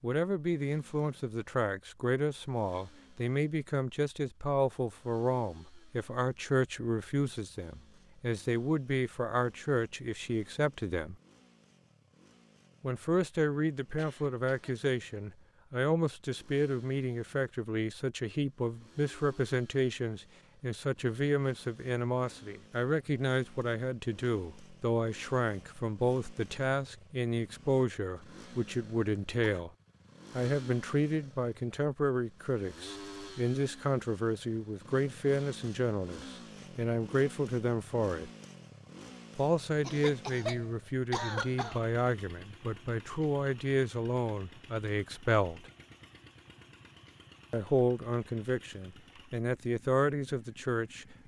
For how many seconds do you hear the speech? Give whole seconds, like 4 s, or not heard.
46 s.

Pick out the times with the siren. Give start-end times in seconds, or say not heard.
not heard.